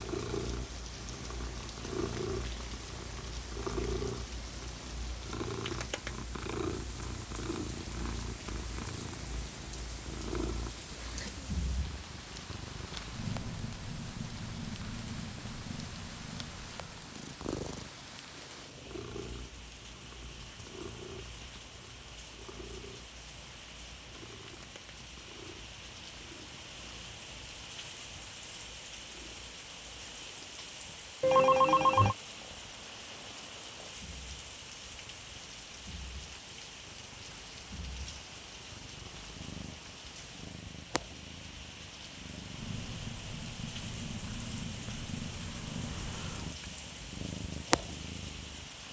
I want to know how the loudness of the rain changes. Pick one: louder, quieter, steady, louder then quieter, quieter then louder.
steady.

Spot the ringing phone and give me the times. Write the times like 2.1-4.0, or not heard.
31.2-32.1.